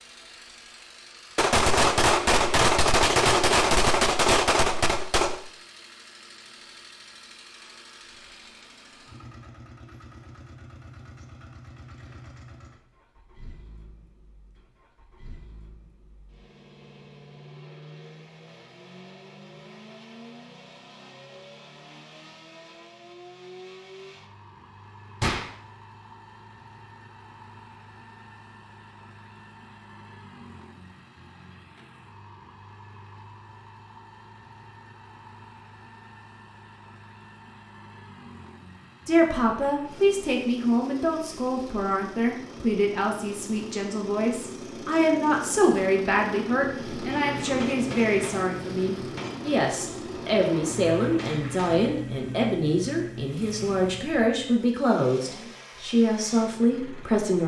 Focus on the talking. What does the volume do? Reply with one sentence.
The volume of the talking stays about the same.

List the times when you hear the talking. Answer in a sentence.
The talking can be heard from 39.0 to 57.4 s.